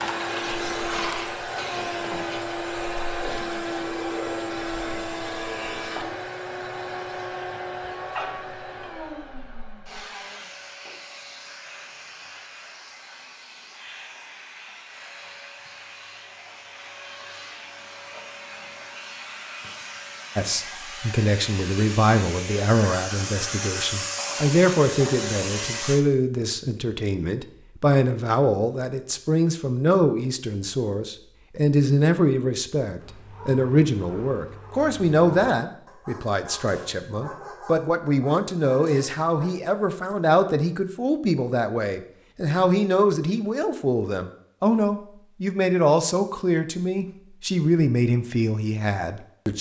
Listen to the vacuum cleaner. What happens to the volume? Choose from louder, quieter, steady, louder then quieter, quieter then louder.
quieter then louder.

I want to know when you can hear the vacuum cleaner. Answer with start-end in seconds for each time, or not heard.
0.0-26.1.